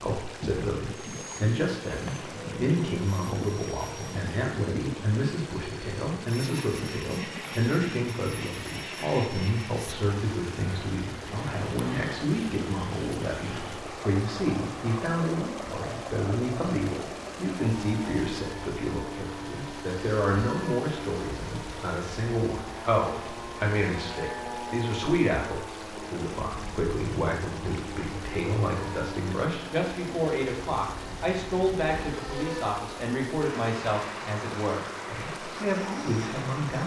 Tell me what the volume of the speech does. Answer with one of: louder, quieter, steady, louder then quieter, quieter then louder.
steady.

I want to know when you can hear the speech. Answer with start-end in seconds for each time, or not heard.
0.0-36.8.